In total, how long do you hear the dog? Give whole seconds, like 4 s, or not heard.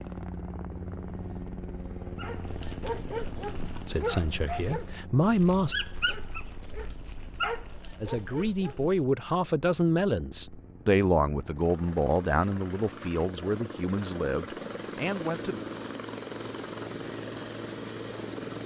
7 s.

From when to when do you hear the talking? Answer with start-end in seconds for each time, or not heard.
3.9-5.8, 8.0-15.6.